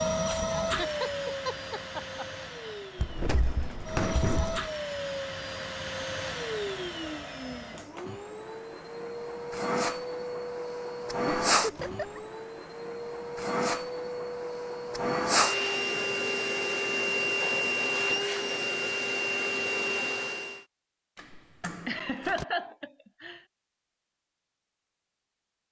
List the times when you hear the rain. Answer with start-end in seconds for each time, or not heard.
not heard.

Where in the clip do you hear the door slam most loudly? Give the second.
4 s.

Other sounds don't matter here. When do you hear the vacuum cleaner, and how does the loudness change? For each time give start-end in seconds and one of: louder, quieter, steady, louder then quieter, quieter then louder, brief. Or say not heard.
0.0-20.6 louder.